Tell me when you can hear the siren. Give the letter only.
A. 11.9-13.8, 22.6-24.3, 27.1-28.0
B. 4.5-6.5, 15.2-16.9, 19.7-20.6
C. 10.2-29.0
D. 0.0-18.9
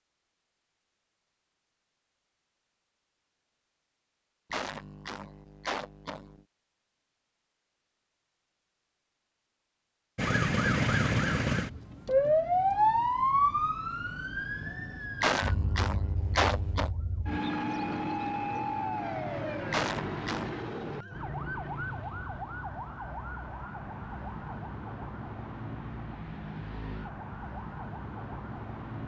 C.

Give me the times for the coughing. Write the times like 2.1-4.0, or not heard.
4.5-6.5, 15.2-16.9, 19.7-20.6.